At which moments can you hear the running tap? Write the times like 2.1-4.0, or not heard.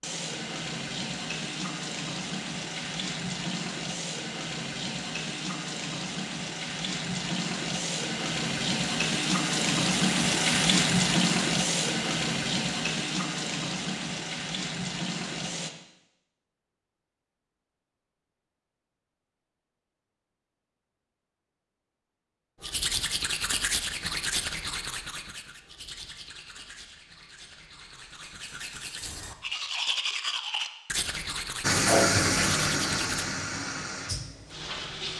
0.0-15.7, 31.6-35.1.